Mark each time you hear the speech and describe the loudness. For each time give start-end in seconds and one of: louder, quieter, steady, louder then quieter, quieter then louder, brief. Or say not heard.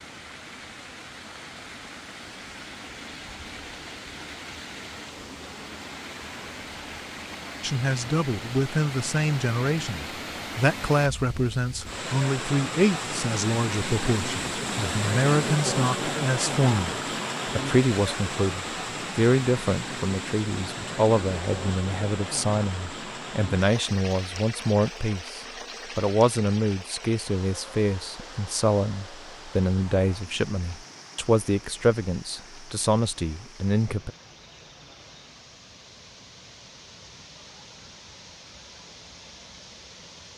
7.6-34.1 steady.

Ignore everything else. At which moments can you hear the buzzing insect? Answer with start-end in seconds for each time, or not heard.
not heard.